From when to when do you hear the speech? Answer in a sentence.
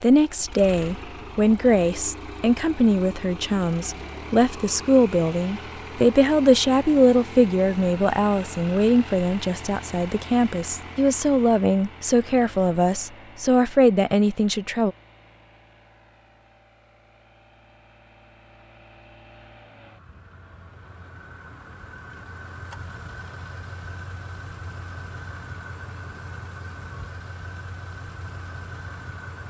You can hear the speech from 0.0 to 14.9 s.